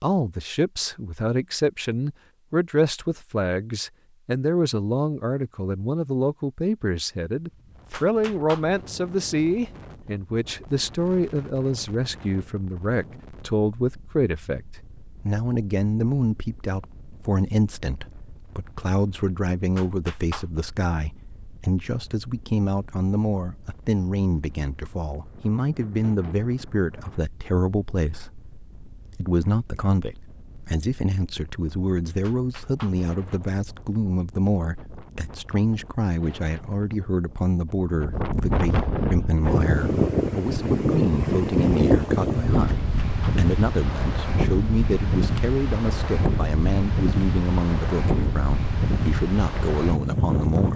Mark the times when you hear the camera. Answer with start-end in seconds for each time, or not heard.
not heard.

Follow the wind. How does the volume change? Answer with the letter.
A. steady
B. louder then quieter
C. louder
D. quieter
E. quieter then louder
E.